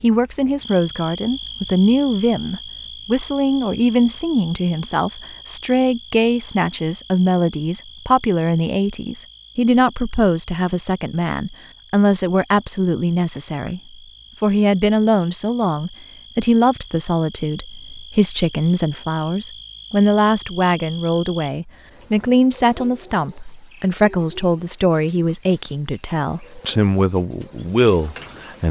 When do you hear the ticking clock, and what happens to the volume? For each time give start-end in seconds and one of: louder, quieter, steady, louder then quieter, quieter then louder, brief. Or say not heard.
not heard.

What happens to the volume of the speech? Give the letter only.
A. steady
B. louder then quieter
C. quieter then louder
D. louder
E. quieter
A.